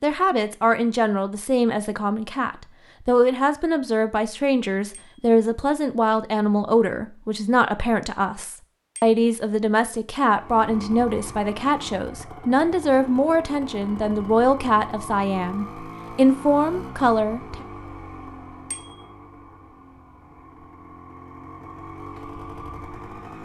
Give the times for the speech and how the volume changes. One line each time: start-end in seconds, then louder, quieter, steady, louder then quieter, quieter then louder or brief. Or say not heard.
0.0-17.6 steady.